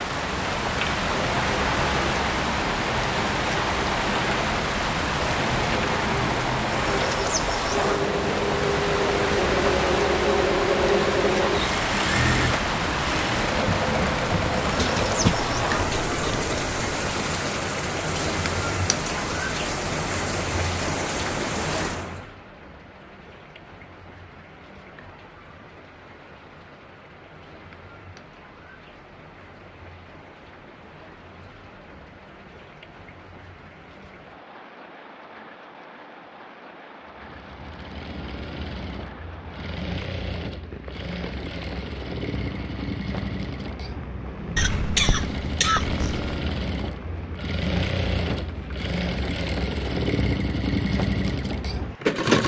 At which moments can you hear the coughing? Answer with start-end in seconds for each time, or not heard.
14.8-15.4, 44.5-46.5.